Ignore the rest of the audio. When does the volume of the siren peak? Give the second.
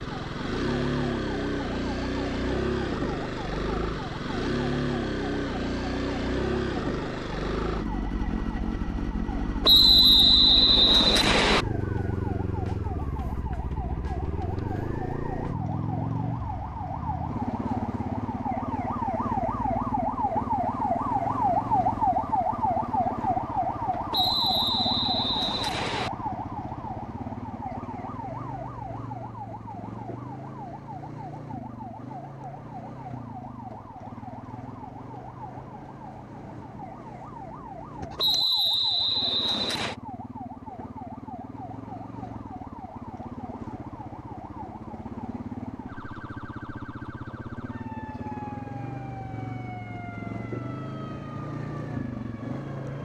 22 s.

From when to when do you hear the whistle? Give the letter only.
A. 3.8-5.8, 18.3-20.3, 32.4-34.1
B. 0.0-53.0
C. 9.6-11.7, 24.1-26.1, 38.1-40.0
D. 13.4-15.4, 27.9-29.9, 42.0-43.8
C.